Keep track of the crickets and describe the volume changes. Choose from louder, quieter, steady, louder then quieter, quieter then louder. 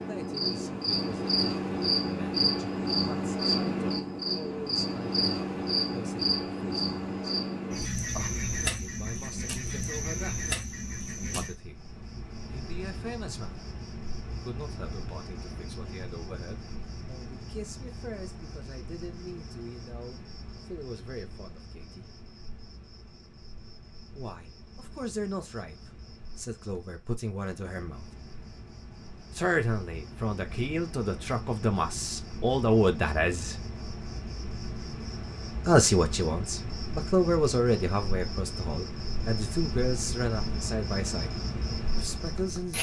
quieter then louder.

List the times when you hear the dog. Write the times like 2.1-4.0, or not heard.
not heard.